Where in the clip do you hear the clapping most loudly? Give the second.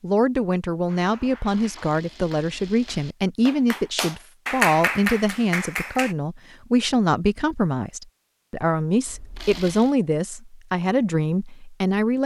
5 s.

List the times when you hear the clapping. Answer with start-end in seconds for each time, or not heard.
0.8-6.2.